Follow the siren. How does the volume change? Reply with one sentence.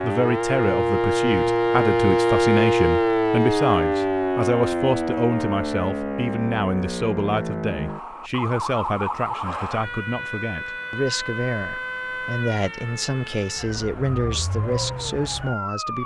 The loudness of the siren goes down.